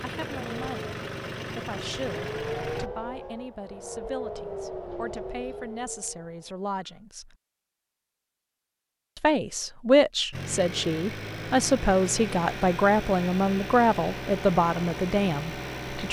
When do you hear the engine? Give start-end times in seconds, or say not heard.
0.0-2.9, 10.3-16.0.